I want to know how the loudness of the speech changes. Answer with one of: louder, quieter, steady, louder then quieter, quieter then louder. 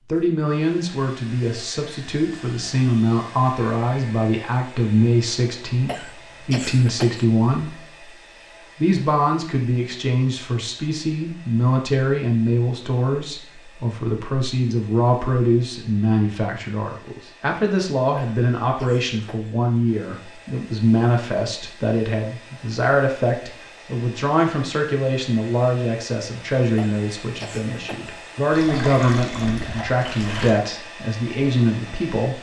steady.